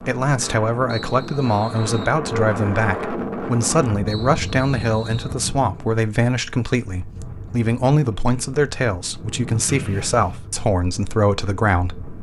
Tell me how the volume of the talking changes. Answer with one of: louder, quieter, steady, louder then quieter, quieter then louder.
steady.